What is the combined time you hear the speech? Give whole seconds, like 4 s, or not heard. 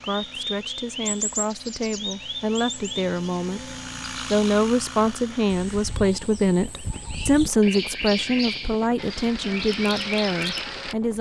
11 s.